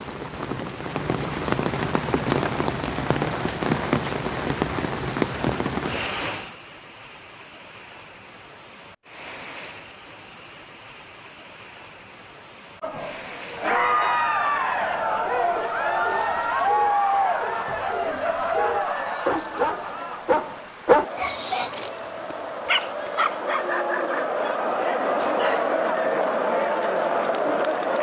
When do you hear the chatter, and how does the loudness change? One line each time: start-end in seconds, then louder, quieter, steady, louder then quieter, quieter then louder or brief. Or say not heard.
12.8-27.9 quieter then louder.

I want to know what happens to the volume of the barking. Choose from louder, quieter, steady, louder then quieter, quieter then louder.
louder then quieter.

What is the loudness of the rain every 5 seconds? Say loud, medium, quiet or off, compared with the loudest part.
loud, medium, quiet, quiet, quiet, quiet.